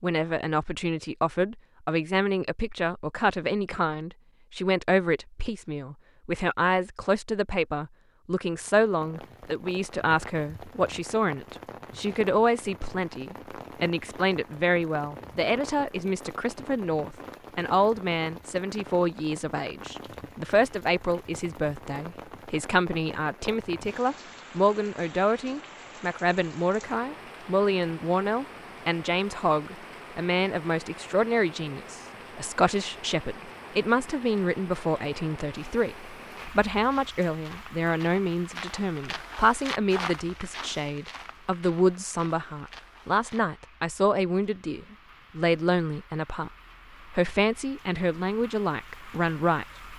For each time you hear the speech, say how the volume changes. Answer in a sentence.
The speech can be heard from 0.0 to 46.5 s, at a steady volume; and briefly from 47.1 to 49.6 s.